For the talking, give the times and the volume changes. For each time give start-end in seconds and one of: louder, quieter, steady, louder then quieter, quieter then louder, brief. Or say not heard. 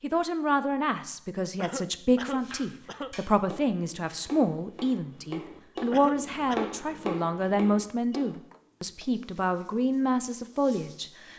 0.0-11.3 steady.